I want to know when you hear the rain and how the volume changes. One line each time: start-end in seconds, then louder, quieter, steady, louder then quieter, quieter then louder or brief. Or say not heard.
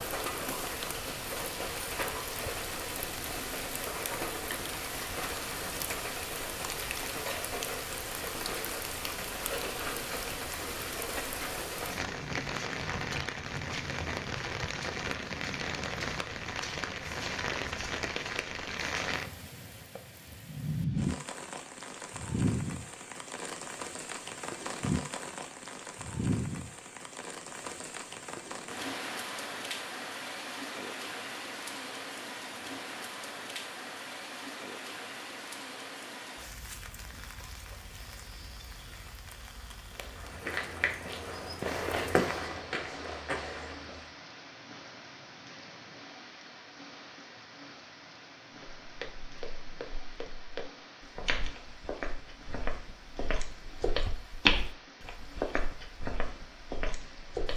0.0-57.5 quieter.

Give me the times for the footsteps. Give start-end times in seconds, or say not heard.
39.9-44.1, 48.6-57.5.